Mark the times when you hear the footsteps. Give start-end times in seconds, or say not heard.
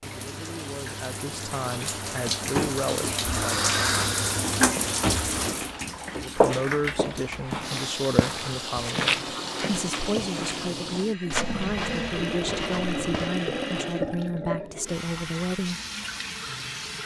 4.7-13.3.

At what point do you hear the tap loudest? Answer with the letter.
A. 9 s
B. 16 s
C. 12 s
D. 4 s
D.